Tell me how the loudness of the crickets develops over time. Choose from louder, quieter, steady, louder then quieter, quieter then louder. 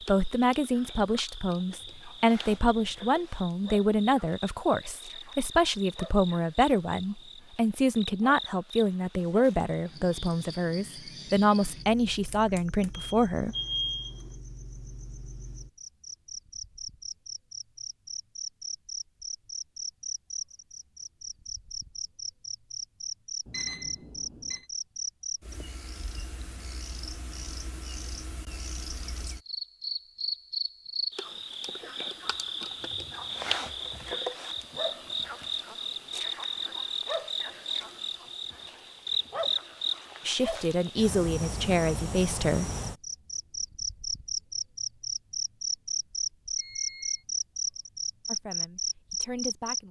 louder.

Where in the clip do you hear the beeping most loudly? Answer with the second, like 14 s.
14 s.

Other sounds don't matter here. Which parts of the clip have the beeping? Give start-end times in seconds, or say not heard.
12.9-14.3, 23.4-24.6, 46.5-47.2.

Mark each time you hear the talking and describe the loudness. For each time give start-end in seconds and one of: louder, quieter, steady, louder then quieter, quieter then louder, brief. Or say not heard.
0.1-13.6 steady
40.2-42.7 brief
48.2-49.8 brief.